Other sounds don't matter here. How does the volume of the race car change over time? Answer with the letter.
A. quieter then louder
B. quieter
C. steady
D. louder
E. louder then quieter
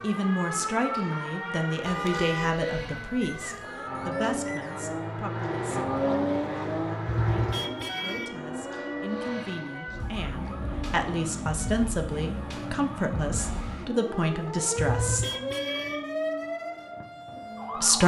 E.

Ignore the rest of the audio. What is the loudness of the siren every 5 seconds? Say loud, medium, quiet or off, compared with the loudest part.
loud, medium, loud, loud.